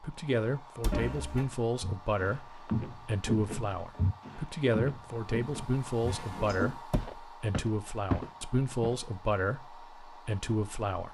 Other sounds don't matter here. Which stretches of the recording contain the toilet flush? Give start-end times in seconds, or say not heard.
0.9-1.5, 6.0-6.8.